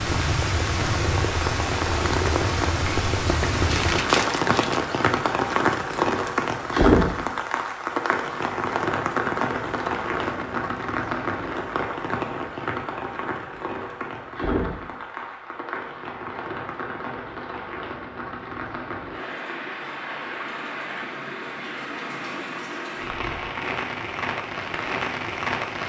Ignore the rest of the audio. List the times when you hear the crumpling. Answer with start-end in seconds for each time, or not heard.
3.6-4.9.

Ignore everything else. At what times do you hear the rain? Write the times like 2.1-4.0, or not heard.
0.0-25.8.